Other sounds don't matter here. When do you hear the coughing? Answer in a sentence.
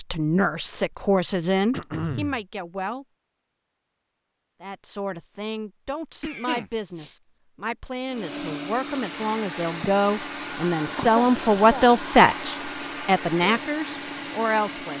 The coughing can be heard from 1.7 to 2.4 s, from 6.2 to 7.2 s and from 10.9 to 11.8 s.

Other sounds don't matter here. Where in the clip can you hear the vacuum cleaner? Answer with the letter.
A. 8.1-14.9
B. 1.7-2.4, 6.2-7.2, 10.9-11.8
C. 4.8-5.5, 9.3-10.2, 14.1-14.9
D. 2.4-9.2
A.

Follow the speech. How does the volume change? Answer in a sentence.
The volume of the speech goes down, then up.